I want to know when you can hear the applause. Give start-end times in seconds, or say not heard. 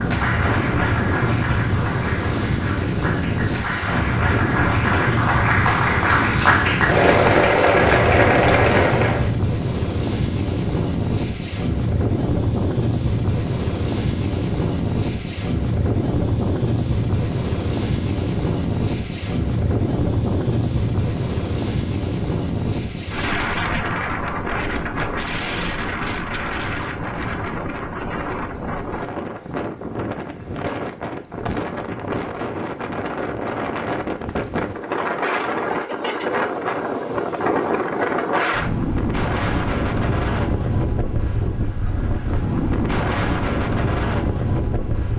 0.0-9.3.